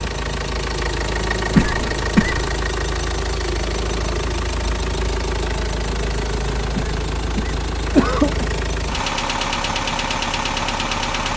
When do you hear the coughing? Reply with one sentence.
You can hear the coughing from 1.6 to 2.5 s and from 6.8 to 8.4 s.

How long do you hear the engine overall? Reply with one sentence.
The engine can be heard for 11 seconds in total.